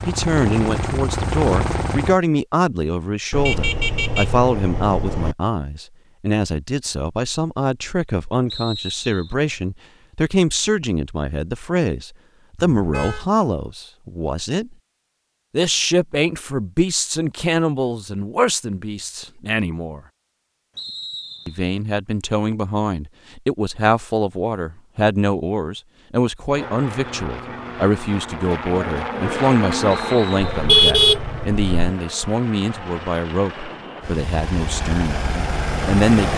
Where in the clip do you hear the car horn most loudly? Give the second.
31 s.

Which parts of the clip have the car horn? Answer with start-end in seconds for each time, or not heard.
3.3-5.3, 12.6-13.2, 30.4-31.9.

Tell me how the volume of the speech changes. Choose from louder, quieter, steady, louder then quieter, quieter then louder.
steady.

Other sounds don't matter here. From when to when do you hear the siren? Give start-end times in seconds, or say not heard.
not heard.